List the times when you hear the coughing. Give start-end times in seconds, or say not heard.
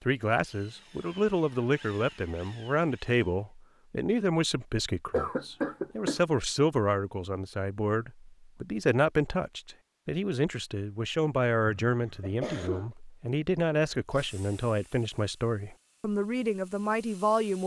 5.1-6.2, 11.8-12.9.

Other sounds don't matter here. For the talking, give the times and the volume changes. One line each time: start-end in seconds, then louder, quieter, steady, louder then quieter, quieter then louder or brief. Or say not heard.
0.0-17.6 steady.